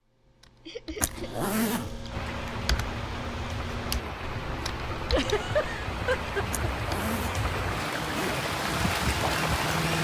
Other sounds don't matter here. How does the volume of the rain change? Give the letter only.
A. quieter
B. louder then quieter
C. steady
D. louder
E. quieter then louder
D.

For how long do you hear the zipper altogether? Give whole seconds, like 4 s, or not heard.
3 s.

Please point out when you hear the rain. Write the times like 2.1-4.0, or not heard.
2.0-10.0.